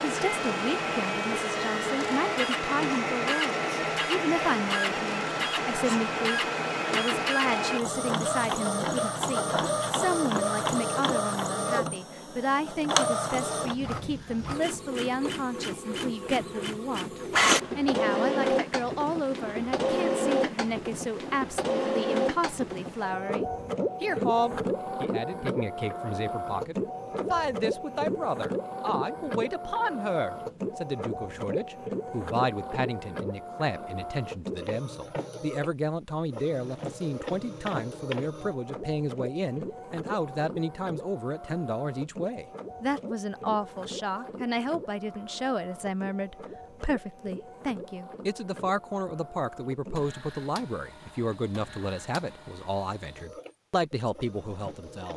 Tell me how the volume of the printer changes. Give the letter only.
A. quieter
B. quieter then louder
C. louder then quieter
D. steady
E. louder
A.